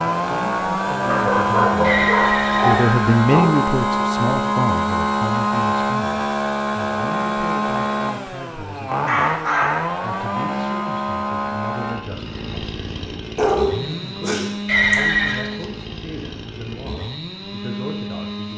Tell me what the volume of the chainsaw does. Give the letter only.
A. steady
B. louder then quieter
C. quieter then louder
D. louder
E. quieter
E.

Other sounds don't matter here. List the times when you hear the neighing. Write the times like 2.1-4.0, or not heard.
1.8-3.2, 14.7-15.5.